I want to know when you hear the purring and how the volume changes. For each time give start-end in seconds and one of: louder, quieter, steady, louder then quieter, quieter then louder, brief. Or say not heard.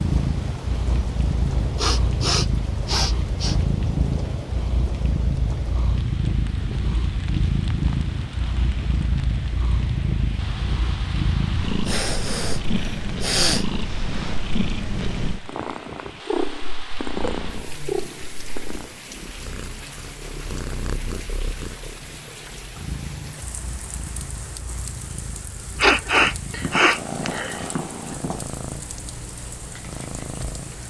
0.0-30.8 quieter.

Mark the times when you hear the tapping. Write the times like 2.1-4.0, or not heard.
26.6-28.4.